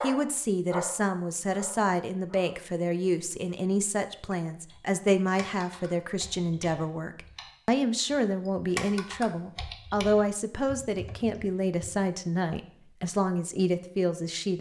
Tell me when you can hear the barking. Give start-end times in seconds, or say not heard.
0.0-2.5.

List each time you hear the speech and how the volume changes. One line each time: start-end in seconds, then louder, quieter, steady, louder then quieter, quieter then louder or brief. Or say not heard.
0.0-14.5 steady.